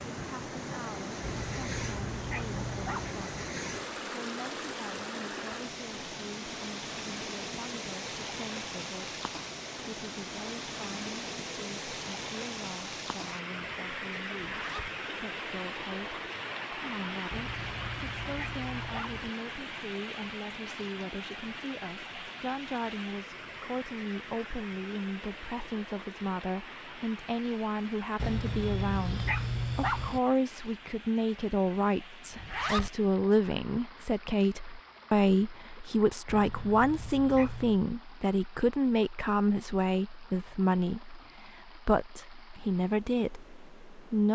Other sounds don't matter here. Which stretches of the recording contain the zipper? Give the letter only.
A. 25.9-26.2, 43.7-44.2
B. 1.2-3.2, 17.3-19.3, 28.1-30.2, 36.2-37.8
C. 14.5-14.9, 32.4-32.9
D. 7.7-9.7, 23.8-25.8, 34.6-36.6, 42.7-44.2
C.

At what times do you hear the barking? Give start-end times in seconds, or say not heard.
1.2-3.2, 17.3-19.3, 28.1-30.2, 36.2-37.8.